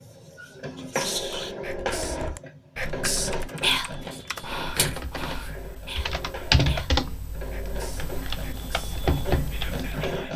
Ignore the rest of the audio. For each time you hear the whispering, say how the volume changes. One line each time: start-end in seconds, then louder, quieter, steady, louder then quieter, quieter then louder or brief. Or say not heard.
0.0-10.3 louder then quieter.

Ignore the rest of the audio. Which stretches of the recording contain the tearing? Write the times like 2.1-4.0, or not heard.
4.0-5.5.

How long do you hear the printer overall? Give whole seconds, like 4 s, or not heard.
10 s.